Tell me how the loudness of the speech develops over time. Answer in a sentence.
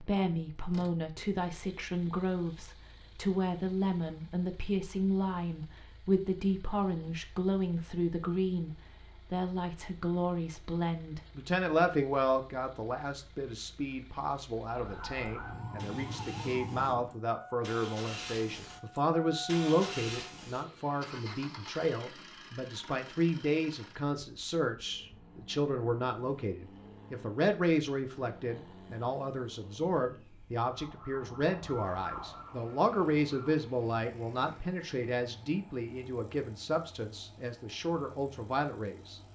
The volume of the speech stays about the same.